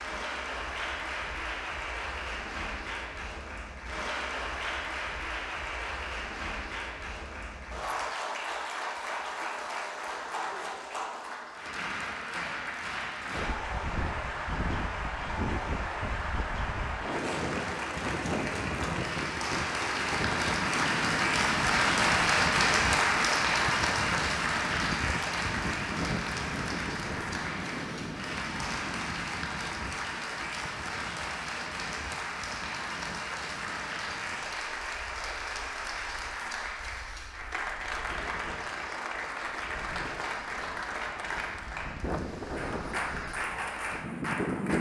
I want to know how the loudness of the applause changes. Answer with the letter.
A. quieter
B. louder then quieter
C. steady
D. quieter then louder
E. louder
B.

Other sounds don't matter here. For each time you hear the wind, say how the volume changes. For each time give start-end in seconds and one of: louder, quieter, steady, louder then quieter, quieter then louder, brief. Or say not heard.
13.3-44.7 quieter then louder.